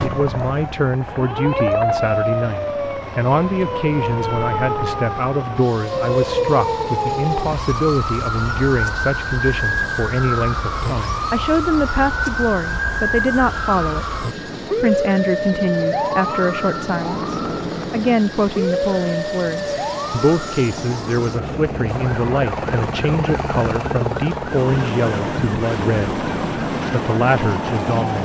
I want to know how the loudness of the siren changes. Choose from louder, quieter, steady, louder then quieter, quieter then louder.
quieter.